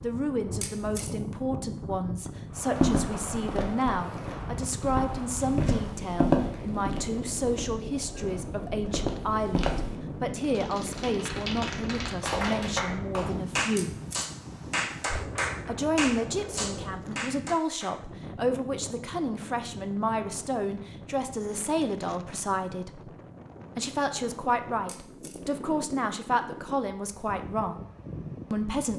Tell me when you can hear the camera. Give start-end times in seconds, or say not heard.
0.6-1.1, 13.8-14.2, 24.9-25.4.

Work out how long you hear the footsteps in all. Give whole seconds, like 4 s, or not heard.
7 s.